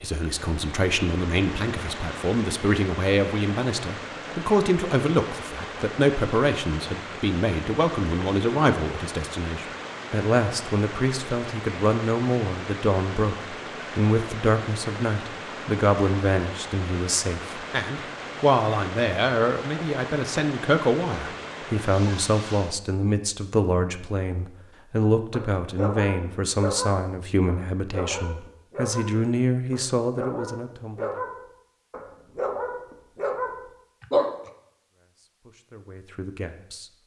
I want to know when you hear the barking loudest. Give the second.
34 s.